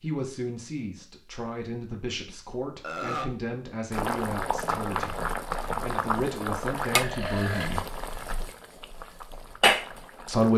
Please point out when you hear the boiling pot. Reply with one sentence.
You can hear the boiling pot from 3.9 to 10.5 s.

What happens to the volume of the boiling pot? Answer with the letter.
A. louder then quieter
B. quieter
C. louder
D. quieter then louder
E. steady
D.